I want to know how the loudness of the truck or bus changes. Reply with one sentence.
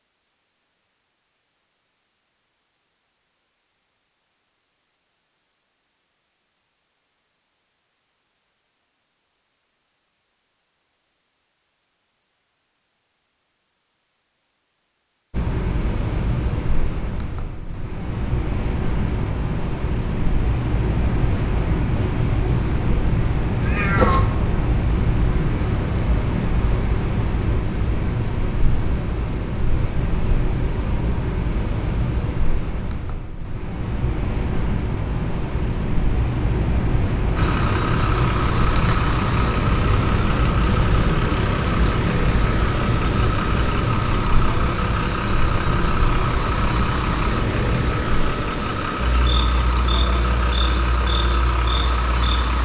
The volume of the truck or bus stays about the same.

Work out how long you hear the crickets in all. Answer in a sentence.
You can hear the crickets for 37 seconds altogether.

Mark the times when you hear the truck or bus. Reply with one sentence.
The truck or bus can be heard from 37.4 to 52.5 s.